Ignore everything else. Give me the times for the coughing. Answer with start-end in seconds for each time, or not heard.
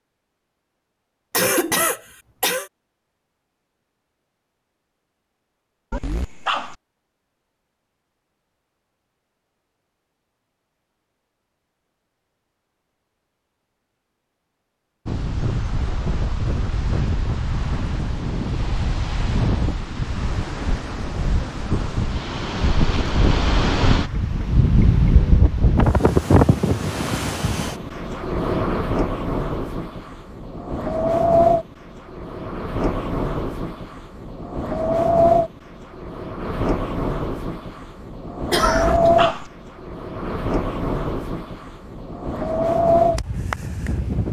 1.3-2.7, 38.5-39.1.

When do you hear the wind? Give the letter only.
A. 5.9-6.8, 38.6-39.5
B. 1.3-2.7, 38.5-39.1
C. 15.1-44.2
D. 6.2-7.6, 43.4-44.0
C.